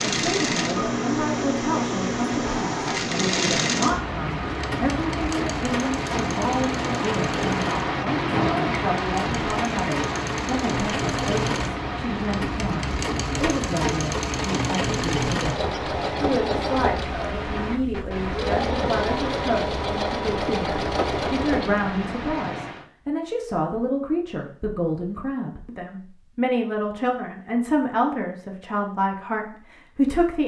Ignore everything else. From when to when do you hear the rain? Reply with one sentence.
The rain can be heard from 0.0 to 22.9 s.